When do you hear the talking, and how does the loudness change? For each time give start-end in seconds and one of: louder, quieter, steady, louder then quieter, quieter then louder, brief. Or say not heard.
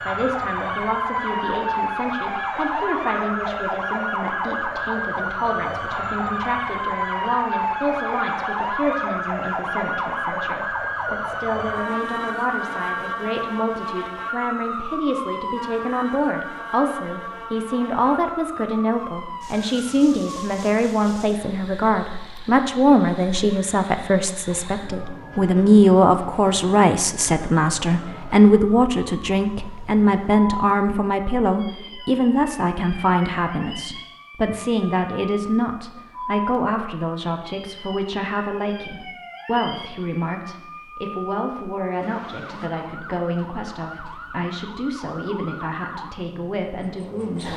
0.0-47.5 louder then quieter.